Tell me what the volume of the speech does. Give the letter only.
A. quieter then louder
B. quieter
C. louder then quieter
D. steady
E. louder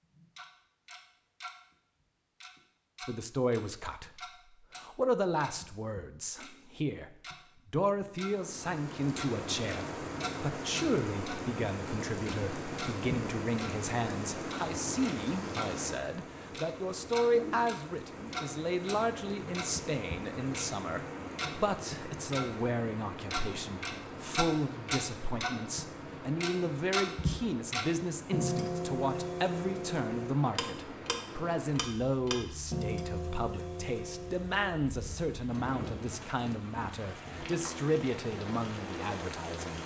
D.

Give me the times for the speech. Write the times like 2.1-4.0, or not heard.
3.0-39.8.